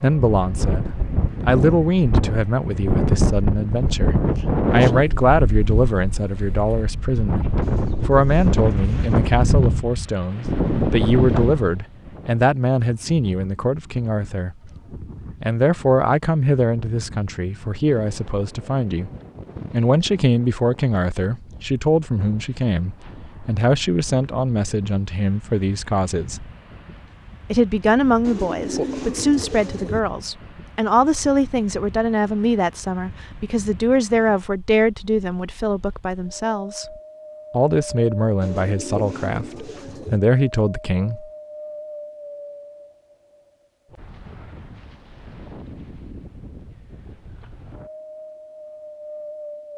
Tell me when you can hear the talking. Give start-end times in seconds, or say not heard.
0.0-14.7, 15.4-19.1, 19.7-26.4, 27.5-36.9, 37.5-41.2.